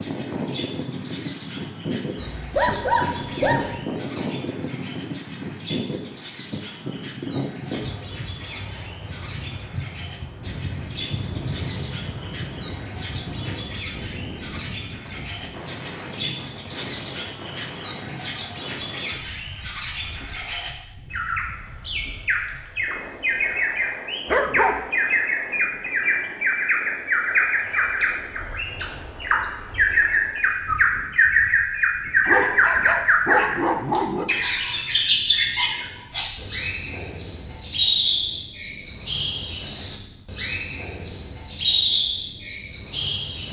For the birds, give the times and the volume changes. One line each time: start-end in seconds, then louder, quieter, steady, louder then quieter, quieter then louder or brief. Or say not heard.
0.0-43.4 louder.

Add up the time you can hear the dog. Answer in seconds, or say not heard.
4 s.